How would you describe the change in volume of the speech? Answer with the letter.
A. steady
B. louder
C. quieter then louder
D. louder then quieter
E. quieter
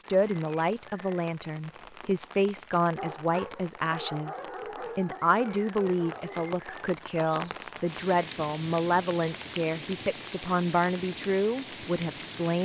A.